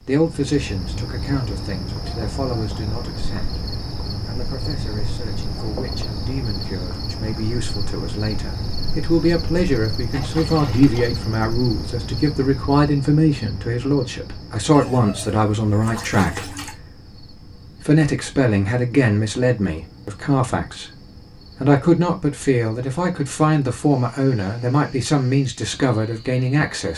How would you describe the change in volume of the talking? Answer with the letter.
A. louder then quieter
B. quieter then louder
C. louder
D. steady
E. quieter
C.